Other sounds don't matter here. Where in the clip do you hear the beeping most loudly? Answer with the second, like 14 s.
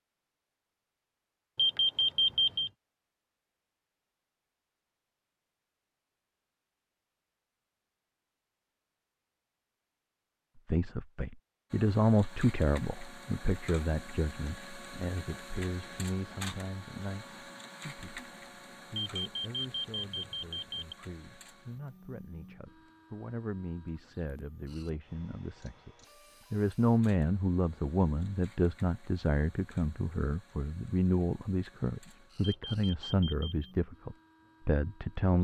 2 s.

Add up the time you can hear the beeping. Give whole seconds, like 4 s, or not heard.
4 s.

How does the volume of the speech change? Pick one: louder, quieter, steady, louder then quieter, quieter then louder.
quieter then louder.